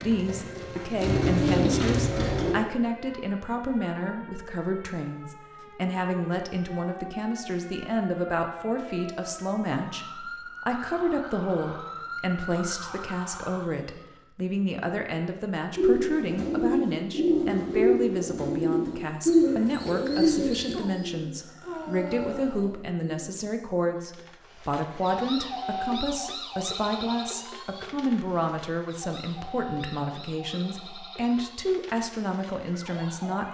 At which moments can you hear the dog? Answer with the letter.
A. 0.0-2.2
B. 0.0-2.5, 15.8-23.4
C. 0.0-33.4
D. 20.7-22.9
D.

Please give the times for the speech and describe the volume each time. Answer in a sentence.
The speech can be heard from 0.0 to 33.4 s, at a steady volume.